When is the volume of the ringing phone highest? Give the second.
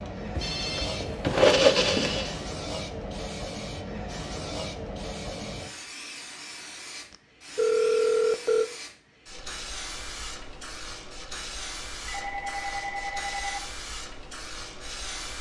8 s.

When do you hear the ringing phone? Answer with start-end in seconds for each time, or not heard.
0.4-2.5, 7.1-8.7, 12.1-13.6.